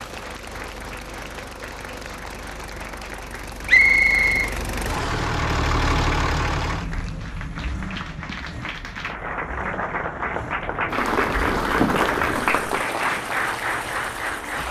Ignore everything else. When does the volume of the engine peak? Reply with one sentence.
The loudest moment of the engine is at 6 seconds.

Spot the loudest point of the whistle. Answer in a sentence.
The volume of the whistle peaks at 4 seconds.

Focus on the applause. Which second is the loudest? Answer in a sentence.
The volume of the applause peaks at 12 seconds.